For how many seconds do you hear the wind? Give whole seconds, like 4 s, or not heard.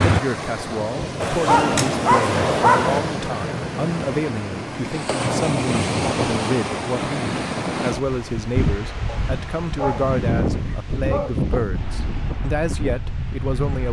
14 s.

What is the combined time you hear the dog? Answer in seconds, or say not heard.
4 s.